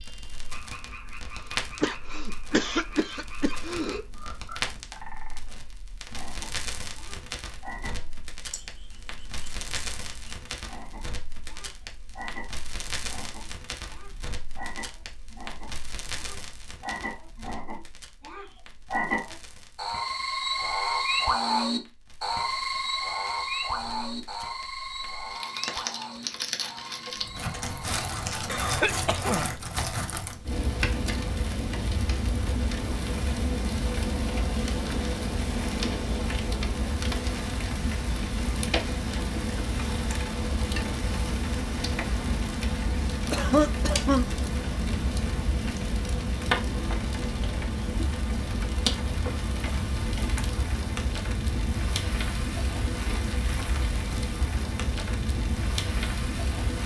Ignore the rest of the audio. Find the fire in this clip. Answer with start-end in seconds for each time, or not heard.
0.0-56.8.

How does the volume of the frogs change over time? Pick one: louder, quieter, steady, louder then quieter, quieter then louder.
louder then quieter.